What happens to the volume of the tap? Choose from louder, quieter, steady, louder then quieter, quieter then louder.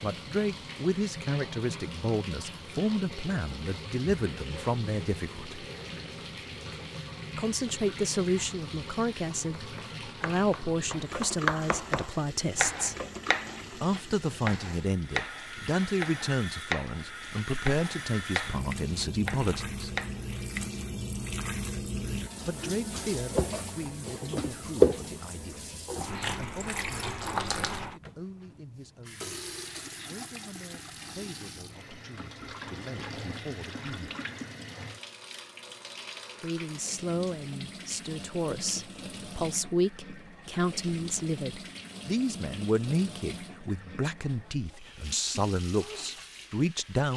louder then quieter.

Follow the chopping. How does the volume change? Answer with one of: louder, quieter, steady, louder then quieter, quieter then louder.
quieter.